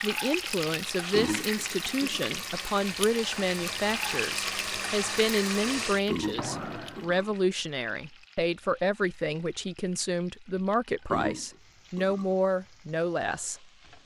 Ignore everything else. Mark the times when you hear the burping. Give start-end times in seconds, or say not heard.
1.1-2.4, 6.0-7.3, 11.1-12.3.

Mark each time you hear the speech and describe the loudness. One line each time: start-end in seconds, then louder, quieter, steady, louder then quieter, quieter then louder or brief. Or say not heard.
0.0-14.0 steady.